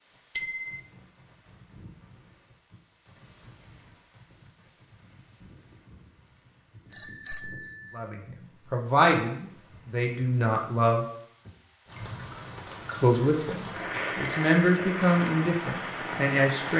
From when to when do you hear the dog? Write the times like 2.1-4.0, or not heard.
not heard.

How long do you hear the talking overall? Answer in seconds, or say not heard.
7 s.